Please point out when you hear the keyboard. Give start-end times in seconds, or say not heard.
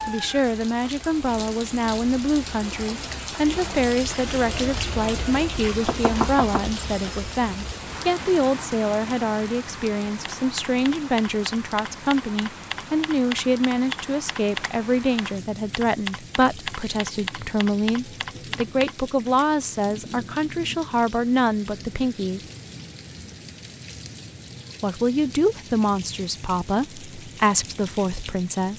10.2-18.9.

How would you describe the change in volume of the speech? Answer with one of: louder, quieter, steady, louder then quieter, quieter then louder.
steady.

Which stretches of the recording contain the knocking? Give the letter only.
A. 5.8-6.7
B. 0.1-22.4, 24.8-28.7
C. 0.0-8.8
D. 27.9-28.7
A.